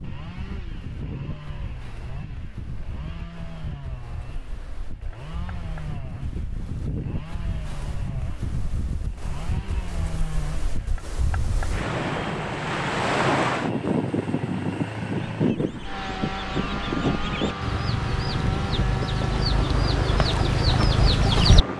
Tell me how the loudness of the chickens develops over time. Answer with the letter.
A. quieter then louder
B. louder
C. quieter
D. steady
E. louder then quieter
B.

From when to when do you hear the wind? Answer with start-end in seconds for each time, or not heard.
0.0-21.7.